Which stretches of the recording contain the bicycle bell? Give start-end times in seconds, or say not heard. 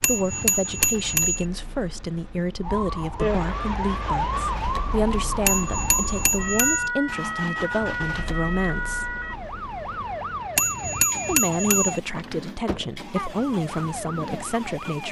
0.0-1.4, 5.5-6.9, 10.6-12.0.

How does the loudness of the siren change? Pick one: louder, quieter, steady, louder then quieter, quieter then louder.
quieter.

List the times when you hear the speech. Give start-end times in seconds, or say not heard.
0.0-9.2, 11.2-15.0.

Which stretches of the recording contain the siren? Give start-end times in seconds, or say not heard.
2.6-15.0.